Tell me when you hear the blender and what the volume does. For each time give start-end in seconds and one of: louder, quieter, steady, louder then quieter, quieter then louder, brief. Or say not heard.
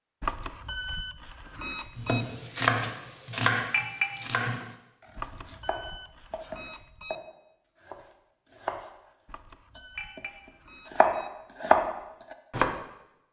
not heard.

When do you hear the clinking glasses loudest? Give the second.
4 s.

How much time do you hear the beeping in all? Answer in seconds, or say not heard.
6 s.